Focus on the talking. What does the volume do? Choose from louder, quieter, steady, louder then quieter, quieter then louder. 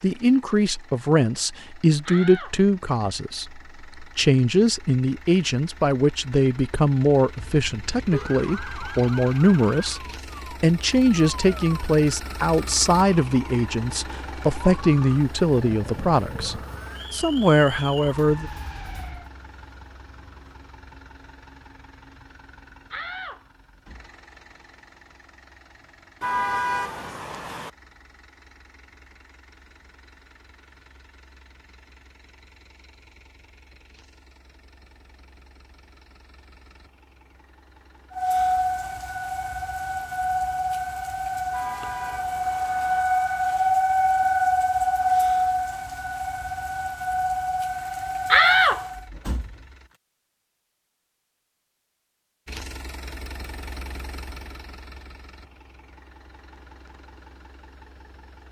steady.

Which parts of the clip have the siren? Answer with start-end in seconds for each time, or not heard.
8.1-19.3, 38.1-49.0.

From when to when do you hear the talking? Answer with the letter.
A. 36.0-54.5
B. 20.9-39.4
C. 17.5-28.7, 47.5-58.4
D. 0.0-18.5
D.